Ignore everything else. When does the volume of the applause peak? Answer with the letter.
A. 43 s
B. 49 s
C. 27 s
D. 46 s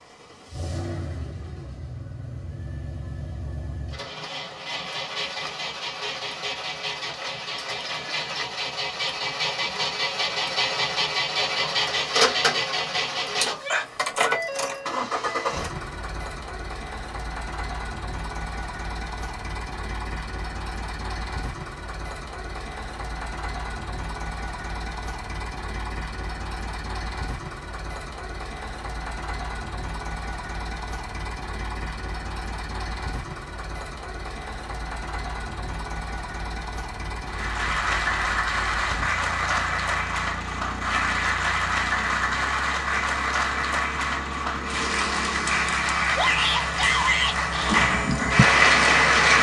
B.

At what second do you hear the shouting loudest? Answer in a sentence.
The volume of the shouting peaks at 47 seconds.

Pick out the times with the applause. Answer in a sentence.
You can hear the applause from 37.2 to 49.3 s.